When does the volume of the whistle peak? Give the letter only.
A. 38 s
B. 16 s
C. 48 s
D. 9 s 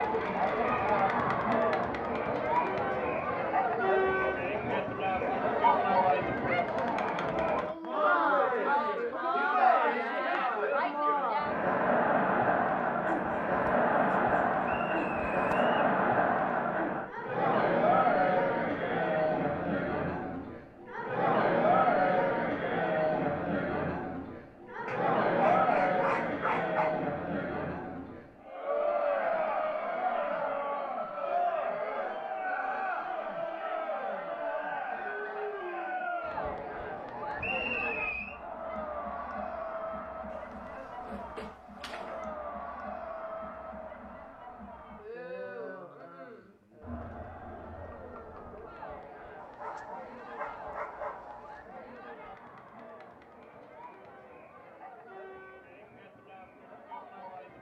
A.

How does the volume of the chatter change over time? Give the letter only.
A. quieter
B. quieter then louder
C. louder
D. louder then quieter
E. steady
A.